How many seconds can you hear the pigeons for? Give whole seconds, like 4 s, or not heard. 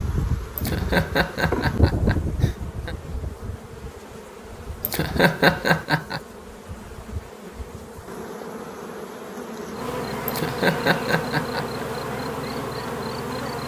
not heard.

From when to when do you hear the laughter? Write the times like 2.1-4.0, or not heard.
0.6-3.0, 4.8-6.2, 10.2-11.8.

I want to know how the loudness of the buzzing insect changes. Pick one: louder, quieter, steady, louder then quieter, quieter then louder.
quieter then louder.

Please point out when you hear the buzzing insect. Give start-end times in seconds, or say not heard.
0.0-13.6.